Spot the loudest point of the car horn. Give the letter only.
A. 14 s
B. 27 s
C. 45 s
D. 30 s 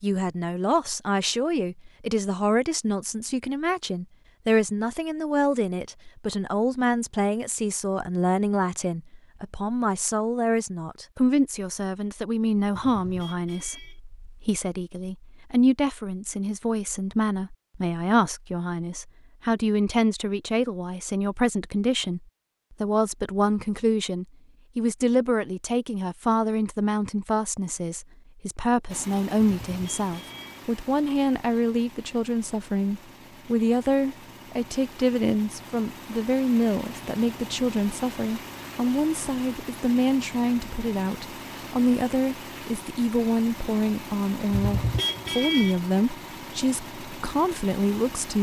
C.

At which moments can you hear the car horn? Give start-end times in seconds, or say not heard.
12.7-14.0, 29.4-30.6, 44.5-45.8.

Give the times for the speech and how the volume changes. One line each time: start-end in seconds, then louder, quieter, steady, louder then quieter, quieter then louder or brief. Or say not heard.
0.0-48.3 steady.